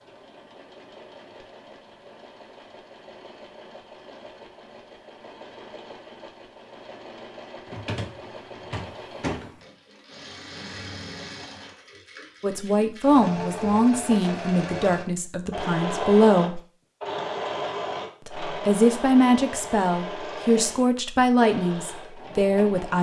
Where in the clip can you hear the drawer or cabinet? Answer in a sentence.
You can hear the drawer or cabinet from 7.7 to 9.7 s.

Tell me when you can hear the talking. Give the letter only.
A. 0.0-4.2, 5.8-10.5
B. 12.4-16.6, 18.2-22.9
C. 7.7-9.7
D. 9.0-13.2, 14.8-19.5
B.